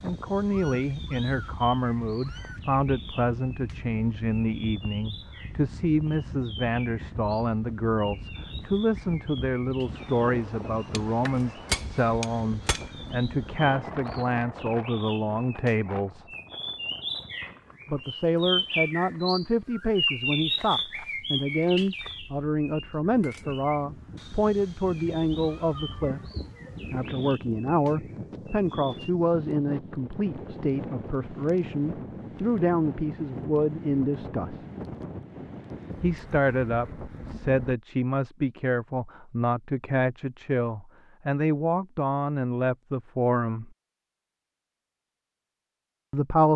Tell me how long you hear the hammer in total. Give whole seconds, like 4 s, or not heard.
2 s.